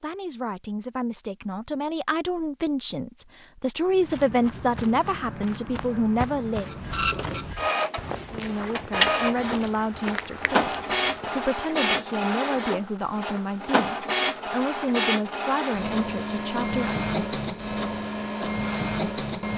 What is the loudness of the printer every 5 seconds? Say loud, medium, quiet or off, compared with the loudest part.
off, loud, loud, loud.